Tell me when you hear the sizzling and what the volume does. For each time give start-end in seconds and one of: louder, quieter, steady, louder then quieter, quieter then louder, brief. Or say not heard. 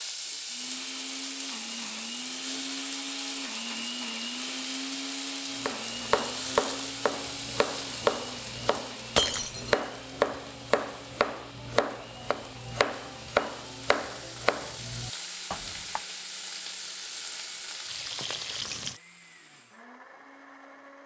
0.0-19.0 quieter then louder.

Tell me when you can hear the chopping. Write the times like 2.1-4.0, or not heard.
5.6-16.0.